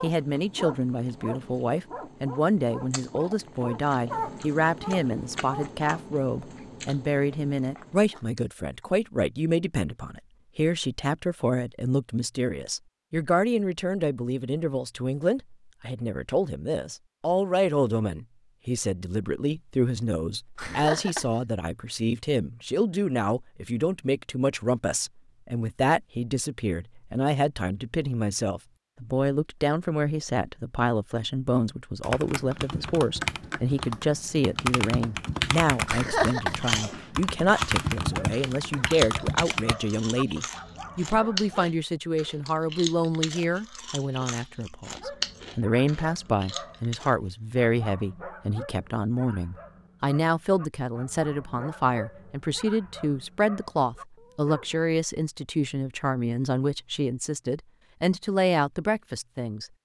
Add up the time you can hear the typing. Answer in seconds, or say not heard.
8 s.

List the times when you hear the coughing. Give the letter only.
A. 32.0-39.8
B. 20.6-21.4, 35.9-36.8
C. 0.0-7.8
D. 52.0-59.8
B.